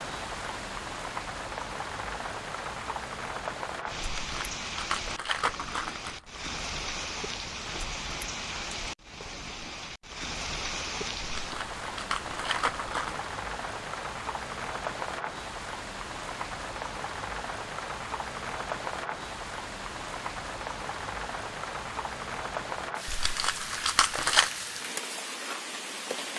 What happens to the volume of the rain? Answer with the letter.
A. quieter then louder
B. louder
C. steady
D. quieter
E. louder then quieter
C.